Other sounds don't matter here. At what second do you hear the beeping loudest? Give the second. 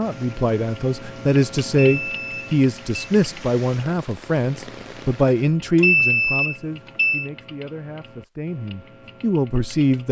6 s.